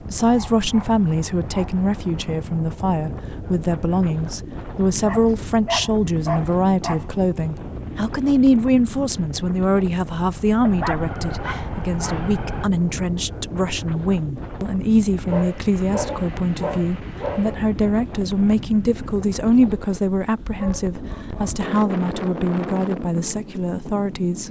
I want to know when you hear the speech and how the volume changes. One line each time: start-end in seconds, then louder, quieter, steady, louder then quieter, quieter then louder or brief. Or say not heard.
0.1-24.4 steady.